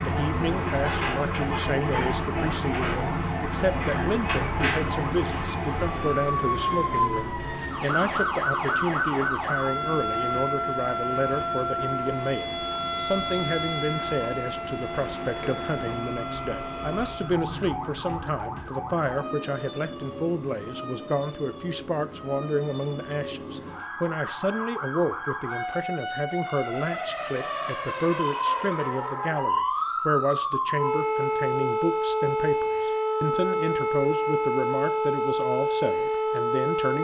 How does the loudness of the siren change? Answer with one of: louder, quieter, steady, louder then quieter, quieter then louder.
quieter then louder.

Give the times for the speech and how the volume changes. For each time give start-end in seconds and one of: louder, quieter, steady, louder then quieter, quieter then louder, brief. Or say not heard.
0.0-37.0 steady.